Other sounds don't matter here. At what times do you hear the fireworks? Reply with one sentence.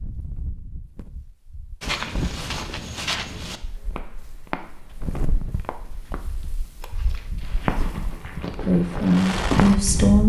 The fireworks can be heard from 7.4 to 10.2 s.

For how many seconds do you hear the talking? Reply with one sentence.
The talking can be heard for 2 seconds in total.